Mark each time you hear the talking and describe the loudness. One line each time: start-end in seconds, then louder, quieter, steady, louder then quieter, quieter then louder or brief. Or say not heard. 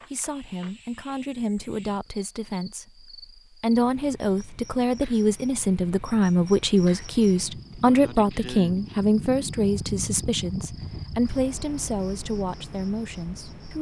0.1-13.7 louder then quieter.